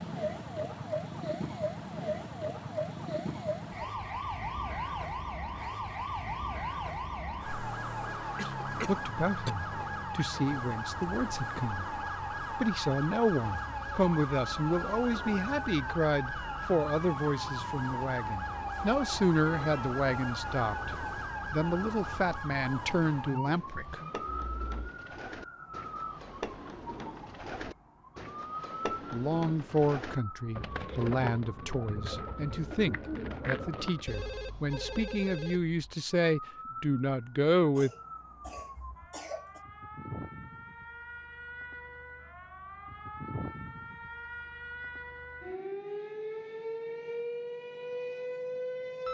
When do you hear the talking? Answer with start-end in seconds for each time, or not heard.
8.4-24.0, 29.1-37.9.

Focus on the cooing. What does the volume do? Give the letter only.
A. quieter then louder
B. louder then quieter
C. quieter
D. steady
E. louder
E.